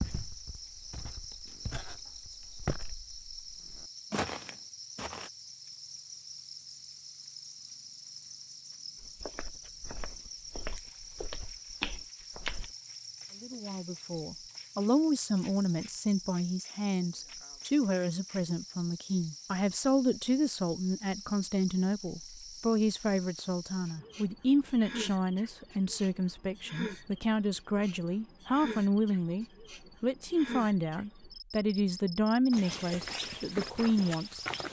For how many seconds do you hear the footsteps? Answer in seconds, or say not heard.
11 s.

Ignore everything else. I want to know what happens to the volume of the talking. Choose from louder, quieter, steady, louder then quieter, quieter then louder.
steady.